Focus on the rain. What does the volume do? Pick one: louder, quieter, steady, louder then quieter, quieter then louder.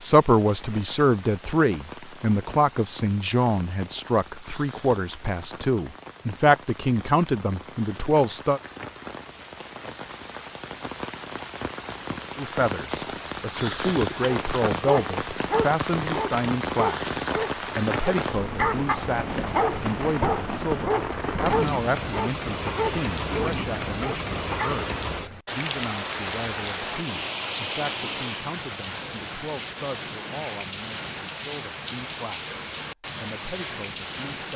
louder.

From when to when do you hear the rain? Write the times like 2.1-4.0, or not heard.
0.0-34.5.